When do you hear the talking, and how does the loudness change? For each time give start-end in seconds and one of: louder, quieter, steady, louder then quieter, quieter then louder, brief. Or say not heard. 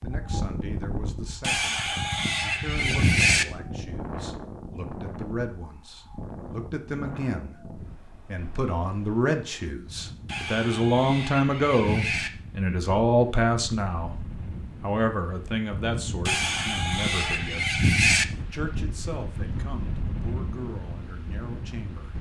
0.0-14.2 louder
14.8-22.1 quieter.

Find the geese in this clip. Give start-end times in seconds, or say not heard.
1.4-3.5, 10.2-12.3, 16.2-18.2.